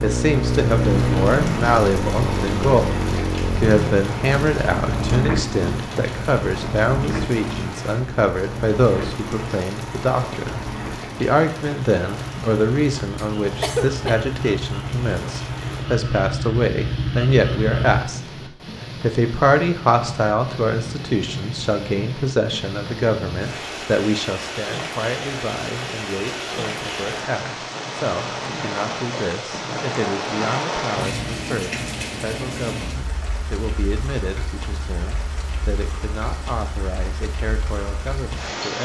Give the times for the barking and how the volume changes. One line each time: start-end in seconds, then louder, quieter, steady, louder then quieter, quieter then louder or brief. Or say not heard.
not heard.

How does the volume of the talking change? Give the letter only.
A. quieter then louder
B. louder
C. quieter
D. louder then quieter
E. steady
C.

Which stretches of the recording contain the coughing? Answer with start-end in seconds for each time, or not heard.
13.2-14.2.